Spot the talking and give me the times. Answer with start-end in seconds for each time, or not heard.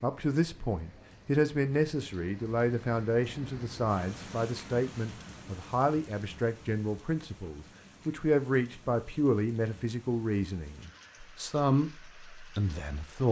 0.0-13.2.